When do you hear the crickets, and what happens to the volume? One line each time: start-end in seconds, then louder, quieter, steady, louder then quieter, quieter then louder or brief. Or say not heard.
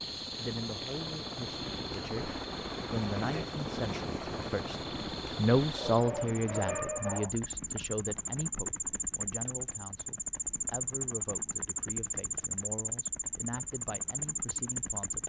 0.0-15.2 louder.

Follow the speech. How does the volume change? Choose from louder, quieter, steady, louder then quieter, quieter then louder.
louder then quieter.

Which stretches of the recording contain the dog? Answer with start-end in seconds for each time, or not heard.
5.8-7.3.